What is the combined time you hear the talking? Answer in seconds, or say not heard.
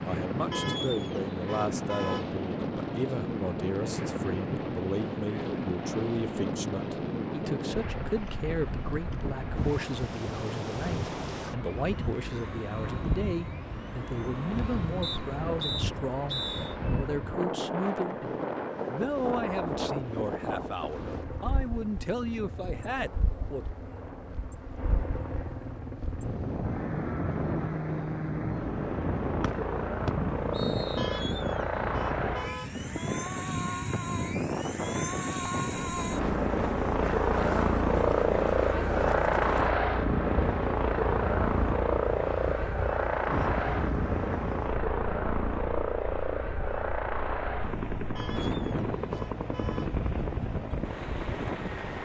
24 s.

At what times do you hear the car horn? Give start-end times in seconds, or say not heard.
0.5-2.4, 30.9-32.8, 48.1-50.0.